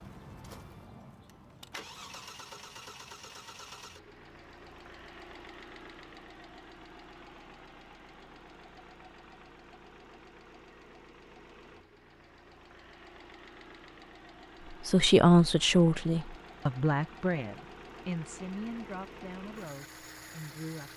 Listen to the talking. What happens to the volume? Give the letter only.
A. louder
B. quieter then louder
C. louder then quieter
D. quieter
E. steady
D.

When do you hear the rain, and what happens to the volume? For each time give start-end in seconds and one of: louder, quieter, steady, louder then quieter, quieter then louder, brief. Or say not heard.
not heard.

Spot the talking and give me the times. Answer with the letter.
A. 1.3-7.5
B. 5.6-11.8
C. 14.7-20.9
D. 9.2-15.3
C.